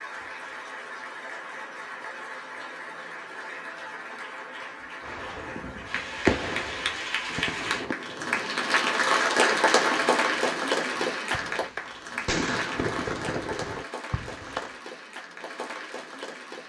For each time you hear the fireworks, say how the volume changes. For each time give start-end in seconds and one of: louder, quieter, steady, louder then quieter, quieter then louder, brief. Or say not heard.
5.0-14.7 quieter then louder.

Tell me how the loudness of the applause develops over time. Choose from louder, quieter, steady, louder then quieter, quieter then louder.
louder then quieter.